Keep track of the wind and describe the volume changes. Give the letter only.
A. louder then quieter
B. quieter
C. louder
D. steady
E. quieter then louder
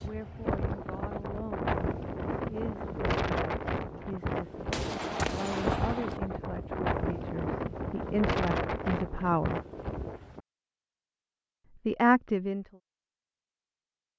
D.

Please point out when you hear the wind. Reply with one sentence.
You can hear the wind from 0.0 to 10.4 s.